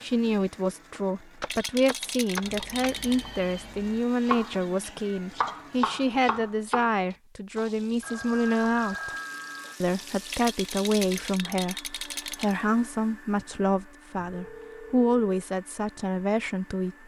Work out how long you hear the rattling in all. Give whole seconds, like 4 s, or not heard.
4 s.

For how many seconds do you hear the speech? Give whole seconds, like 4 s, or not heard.
16 s.